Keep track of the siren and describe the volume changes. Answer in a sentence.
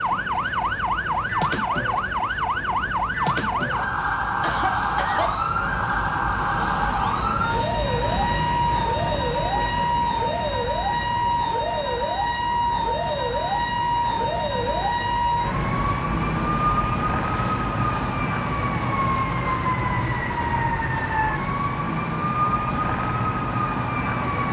The loudness of the siren stays about the same.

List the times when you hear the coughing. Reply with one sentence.
The coughing can be heard from 4.4 to 5.3 s.